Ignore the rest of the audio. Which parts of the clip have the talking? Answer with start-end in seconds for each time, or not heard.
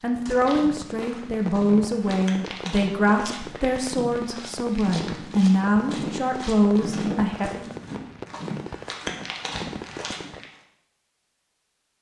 0.0-7.7.